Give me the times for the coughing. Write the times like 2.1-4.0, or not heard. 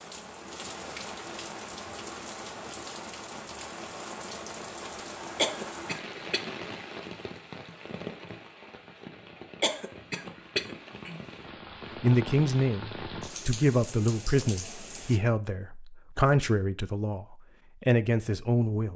5.3-6.5, 9.6-11.2.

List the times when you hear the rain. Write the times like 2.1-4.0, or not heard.
0.0-15.2.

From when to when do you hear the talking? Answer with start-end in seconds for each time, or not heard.
12.0-18.9.